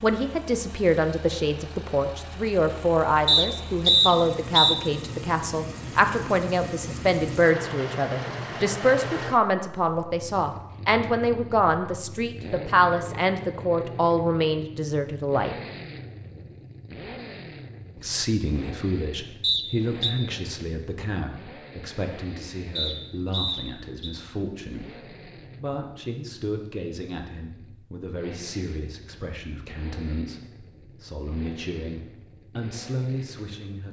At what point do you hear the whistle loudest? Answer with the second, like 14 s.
4 s.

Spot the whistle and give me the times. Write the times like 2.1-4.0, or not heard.
3.2-4.8, 19.4-20.1, 22.8-24.1.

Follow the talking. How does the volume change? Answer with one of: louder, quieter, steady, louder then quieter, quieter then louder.
quieter.